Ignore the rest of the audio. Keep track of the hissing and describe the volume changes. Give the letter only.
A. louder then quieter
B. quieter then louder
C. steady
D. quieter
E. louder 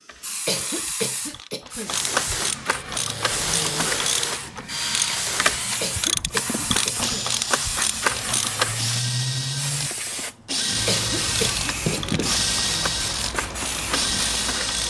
C.